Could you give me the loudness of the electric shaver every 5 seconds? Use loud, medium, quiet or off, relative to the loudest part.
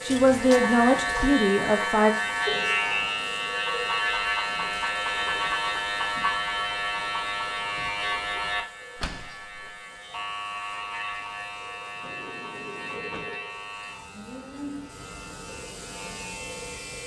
loud, loud, medium, quiet.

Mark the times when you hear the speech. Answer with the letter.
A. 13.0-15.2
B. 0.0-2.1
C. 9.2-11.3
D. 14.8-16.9
B.